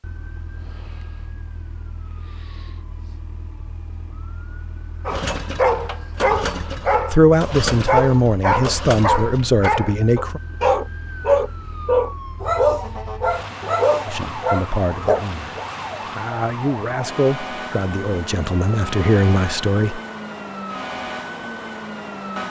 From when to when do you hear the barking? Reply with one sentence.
The barking can be heard from 5.0 to 15.2 s.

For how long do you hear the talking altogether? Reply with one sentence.
You can hear the talking for 9 seconds altogether.